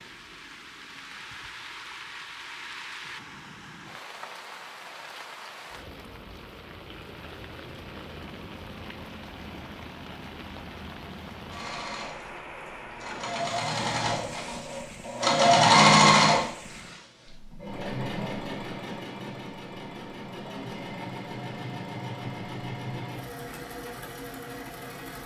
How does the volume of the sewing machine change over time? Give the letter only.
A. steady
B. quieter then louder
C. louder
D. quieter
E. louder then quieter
E.